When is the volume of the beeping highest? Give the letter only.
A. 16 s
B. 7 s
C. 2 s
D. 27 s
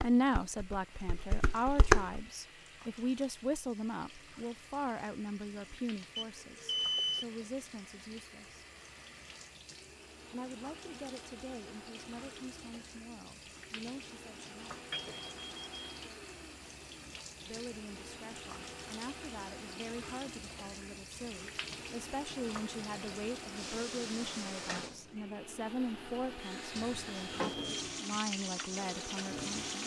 B.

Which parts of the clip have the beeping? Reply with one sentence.
The beeping can be heard from 6.2 to 7.2 s, from 14.9 to 16.0 s and from 26.4 to 27.9 s.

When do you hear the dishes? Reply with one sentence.
You can hear the dishes from 0.0 to 2.2 s.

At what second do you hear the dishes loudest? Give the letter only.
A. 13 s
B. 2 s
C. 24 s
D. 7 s
B.